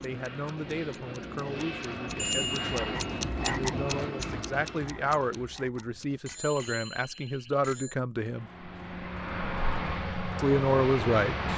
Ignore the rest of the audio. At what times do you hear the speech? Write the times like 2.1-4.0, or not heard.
0.0-8.4, 10.3-11.4.